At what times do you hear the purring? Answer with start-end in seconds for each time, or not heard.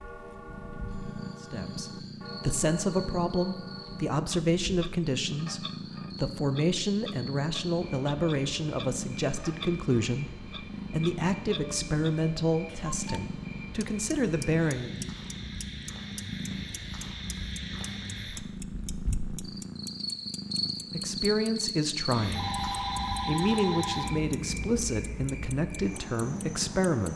0.0-27.1.